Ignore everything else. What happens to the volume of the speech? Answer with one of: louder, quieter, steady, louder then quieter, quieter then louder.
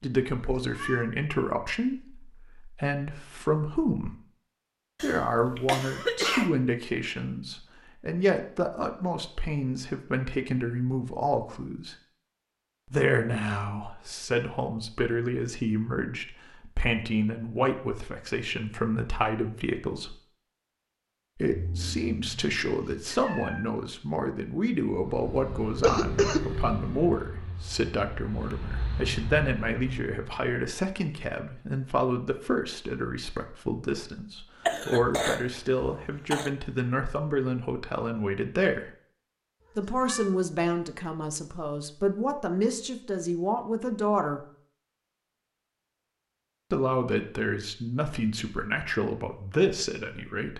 steady.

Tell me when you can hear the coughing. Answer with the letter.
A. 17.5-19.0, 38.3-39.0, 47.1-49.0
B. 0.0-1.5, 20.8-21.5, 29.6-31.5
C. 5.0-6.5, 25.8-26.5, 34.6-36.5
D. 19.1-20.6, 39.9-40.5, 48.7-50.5
C.